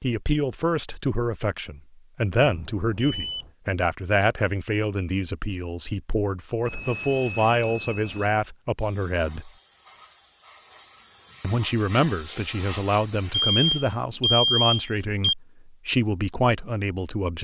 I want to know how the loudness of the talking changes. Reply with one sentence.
The loudness of the talking stays about the same.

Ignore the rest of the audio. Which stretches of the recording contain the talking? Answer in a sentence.
You can hear the talking from 0.0 to 9.5 s and from 11.4 to 17.3 s.